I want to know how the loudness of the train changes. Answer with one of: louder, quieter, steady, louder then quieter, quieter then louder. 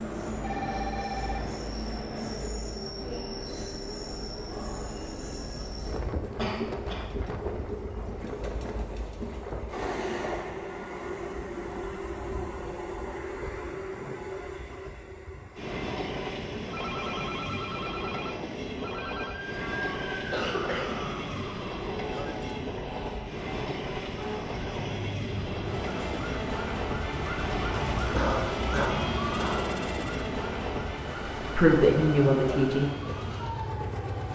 steady.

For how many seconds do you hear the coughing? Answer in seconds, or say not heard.
3 s.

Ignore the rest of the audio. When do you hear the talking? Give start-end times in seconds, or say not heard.
31.4-32.9.